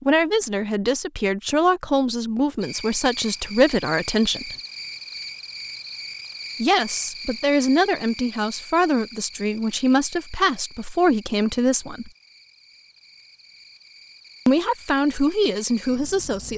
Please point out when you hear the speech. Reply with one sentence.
You can hear the speech from 0.0 to 4.5 s, from 6.6 to 12.1 s and from 14.4 to 16.5 s.